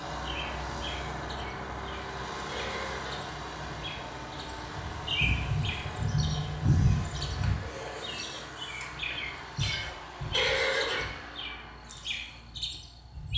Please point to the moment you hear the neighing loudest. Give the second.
11 s.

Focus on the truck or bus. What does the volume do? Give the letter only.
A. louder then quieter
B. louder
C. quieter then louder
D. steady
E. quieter
E.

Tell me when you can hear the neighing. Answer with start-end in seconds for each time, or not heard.
2.5-3.1, 10.3-11.1.